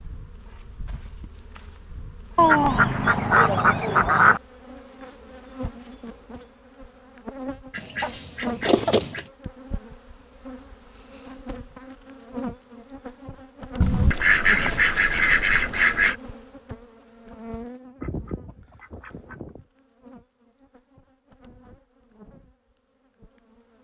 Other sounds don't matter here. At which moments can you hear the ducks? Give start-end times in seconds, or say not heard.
2.4-4.4, 7.7-9.2, 13.8-16.1, 18.0-19.6.